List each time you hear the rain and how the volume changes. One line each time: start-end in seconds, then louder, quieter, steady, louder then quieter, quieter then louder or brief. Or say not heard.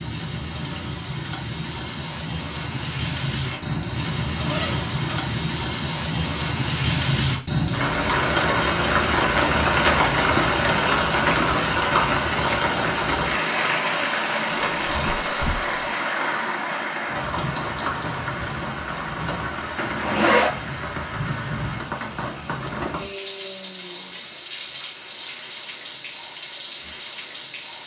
0.0-27.8 louder then quieter.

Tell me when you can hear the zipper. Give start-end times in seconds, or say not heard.
3.4-5.3, 14.5-15.7, 19.8-20.5.